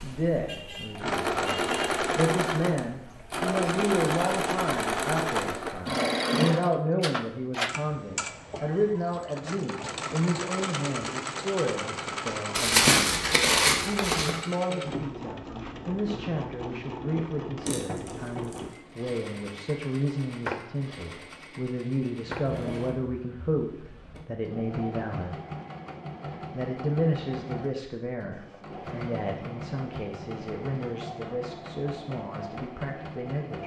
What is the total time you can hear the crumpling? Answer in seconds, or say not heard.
3 s.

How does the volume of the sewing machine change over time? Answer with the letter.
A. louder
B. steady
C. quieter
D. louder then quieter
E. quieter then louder
C.